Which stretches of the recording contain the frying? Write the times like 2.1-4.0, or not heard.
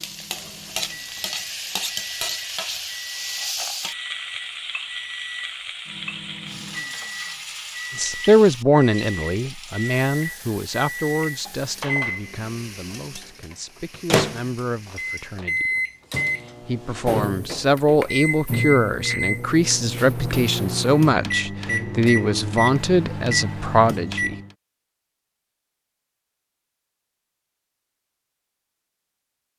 0.0-15.4.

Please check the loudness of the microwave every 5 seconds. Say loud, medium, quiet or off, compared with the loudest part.
quiet, medium, loud, loud, loud, off.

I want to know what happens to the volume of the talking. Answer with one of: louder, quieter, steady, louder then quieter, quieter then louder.
quieter then louder.